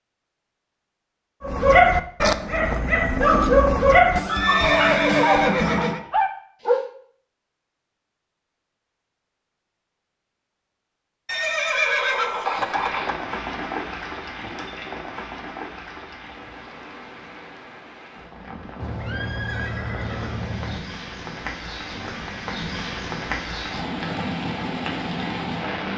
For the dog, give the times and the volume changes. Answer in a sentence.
You can hear the dog from 1.4 to 6.8 s, getting quieter.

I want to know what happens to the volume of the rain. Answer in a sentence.
The loudness of the rain goes down, then up.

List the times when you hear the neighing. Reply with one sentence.
The neighing can be heard from 4.2 to 6.0 s, from 11.2 to 13.2 s and from 18.8 to 20.8 s.